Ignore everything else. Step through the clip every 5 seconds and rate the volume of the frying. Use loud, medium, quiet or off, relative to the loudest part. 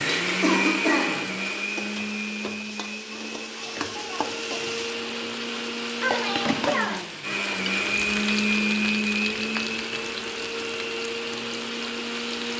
medium, loud, medium.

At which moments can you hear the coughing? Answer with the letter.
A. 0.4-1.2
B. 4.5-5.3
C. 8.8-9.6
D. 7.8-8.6
A.